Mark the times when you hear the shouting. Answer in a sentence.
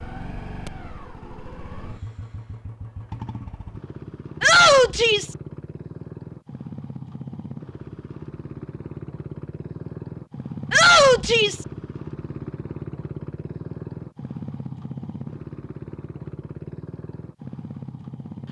The shouting can be heard from 4.4 to 5.3 s and from 10.7 to 11.7 s.